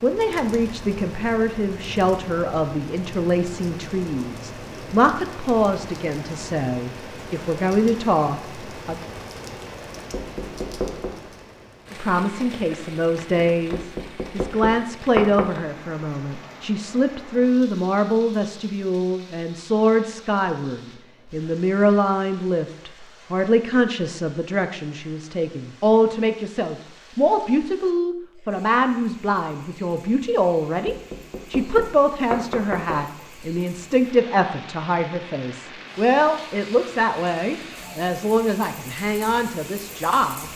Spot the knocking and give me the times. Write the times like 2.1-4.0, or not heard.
10.1-11.2, 13.7-15.6, 30.9-33.0.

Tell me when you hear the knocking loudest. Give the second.
15 s.